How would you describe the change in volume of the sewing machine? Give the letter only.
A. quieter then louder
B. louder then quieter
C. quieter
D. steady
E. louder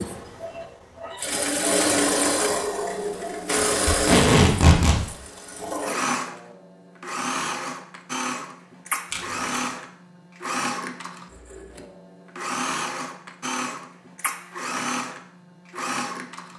C.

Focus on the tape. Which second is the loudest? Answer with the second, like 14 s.
4 s.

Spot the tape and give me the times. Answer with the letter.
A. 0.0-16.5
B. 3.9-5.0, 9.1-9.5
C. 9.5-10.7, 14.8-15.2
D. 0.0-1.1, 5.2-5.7
B.